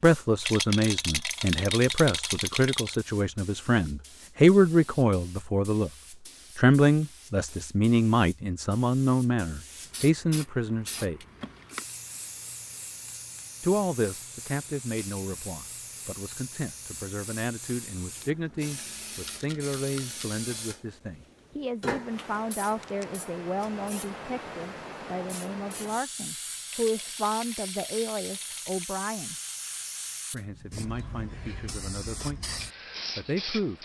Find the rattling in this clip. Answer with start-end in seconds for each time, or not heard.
0.4-3.0, 19.1-20.4, 26.6-28.9.